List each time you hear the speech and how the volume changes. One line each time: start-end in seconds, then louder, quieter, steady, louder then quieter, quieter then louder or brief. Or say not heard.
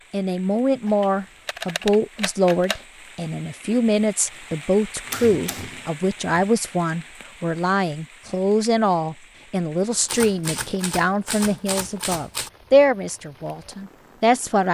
0.1-14.6 steady.